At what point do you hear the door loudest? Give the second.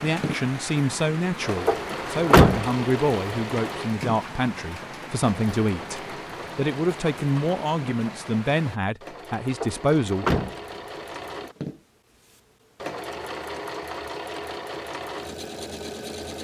2 s.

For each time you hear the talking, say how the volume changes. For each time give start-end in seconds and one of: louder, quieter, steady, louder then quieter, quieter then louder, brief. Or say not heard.
0.0-10.2 steady.